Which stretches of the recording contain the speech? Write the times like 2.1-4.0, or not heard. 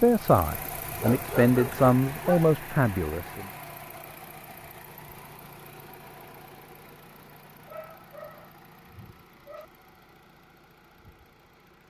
0.0-3.5.